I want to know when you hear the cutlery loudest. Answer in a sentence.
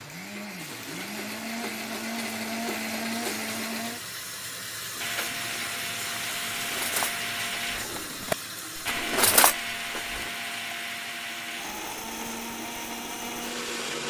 The loudest moment of the cutlery is at 9 seconds.